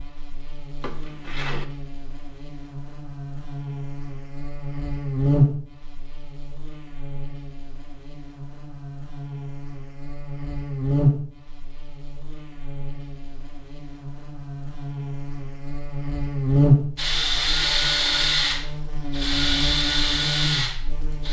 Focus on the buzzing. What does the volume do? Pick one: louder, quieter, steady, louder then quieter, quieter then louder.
louder.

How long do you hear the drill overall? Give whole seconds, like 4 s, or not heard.
4 s.